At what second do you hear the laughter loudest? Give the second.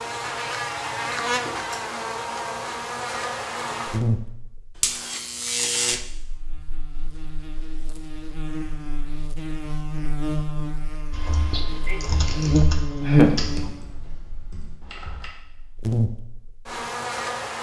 13 s.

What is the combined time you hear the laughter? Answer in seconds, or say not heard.
2 s.